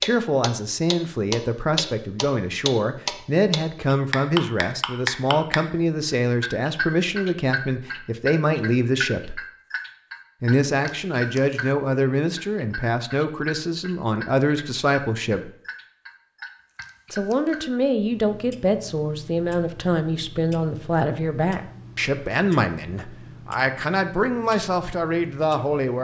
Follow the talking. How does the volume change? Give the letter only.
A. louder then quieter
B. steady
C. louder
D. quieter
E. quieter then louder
B.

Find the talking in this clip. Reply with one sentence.
You can hear the talking from 0.0 to 9.4 s, from 10.4 to 15.5 s and from 17.1 to 25.9 s.